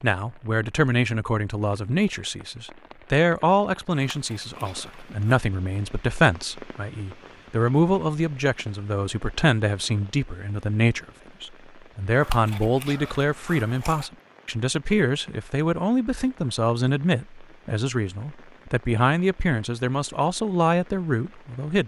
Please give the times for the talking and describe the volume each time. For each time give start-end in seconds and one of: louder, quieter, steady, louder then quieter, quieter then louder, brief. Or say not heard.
0.0-21.8 steady.